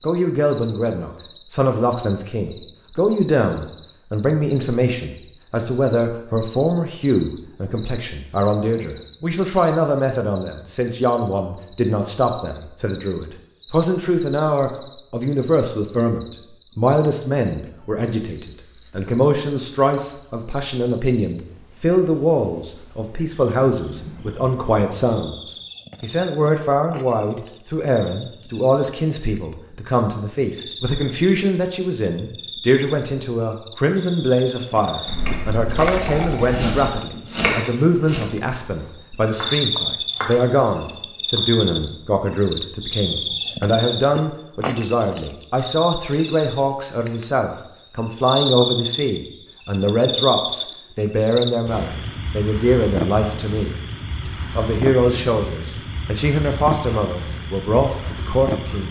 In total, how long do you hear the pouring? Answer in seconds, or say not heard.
2 s.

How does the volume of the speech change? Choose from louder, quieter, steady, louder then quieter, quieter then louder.
steady.